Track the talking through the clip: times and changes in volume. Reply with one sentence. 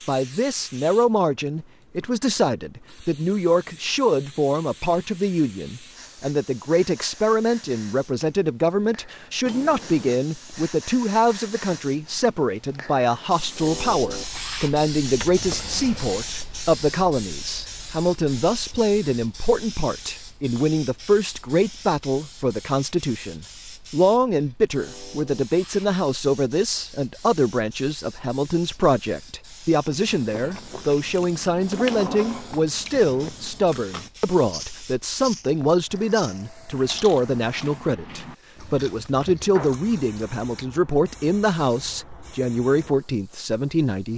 The talking can be heard from 0.1 to 44.1 s, at a steady volume.